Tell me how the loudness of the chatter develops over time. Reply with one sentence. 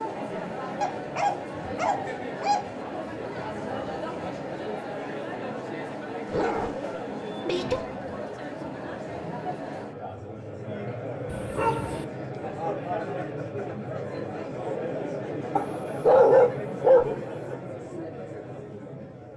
The loudness of the chatter stays about the same.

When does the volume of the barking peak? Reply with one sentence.
The volume of the barking peaks at 16 seconds.